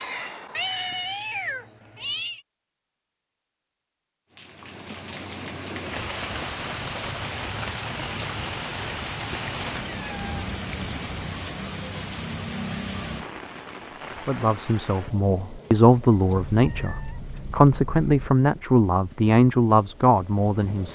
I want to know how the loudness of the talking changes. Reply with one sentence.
The volume of the talking goes up.